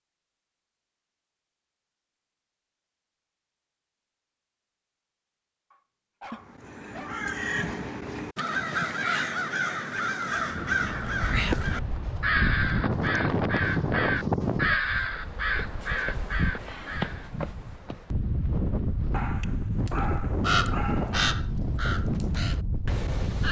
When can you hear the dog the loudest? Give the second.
20 s.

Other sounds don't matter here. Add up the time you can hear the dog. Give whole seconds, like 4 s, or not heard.
4 s.